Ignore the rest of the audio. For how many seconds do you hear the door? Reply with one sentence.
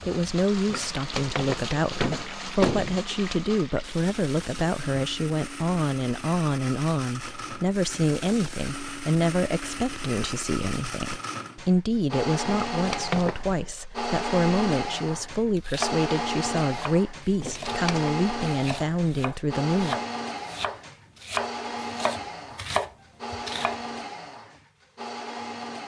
The door can be heard for 4 seconds in total.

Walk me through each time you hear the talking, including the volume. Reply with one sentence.
You can hear the talking from 0.1 to 20.1 s, at a steady volume.